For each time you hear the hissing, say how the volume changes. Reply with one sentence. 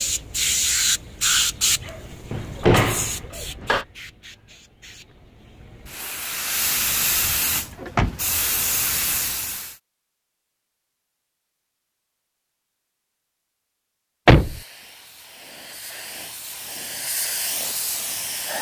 The hissing can be heard from 0.0 to 9.8 s, getting quieter then louder; and from 14.2 to 18.5 s, getting louder.